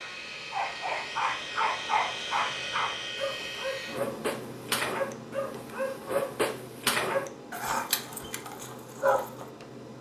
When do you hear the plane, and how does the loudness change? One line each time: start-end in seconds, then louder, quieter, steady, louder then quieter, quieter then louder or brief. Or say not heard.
0.0-9.9 quieter.